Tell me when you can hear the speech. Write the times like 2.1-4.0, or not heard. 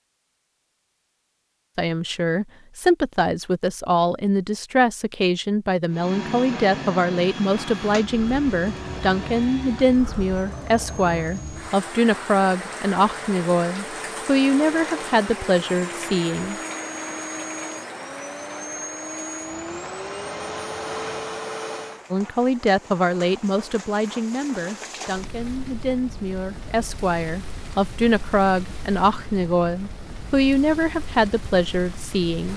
1.8-16.6, 22.1-32.5.